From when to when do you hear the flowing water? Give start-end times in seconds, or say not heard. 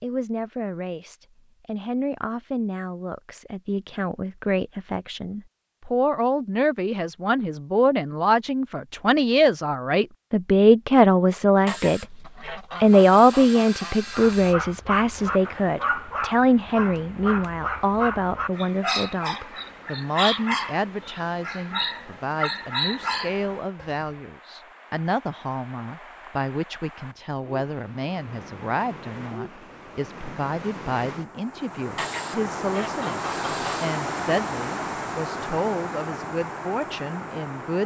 15.1-37.8.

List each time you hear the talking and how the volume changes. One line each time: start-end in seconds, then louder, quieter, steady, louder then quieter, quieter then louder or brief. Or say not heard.
0.0-12.1 louder
12.8-37.8 quieter.